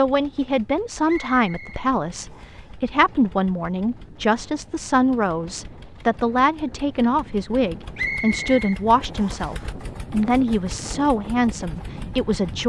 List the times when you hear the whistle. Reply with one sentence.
The whistle can be heard from 1.1 to 2.6 s and from 8.0 to 9.6 s.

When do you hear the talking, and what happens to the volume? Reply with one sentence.
You can hear the talking from 0.0 to 12.6 s, at a steady volume.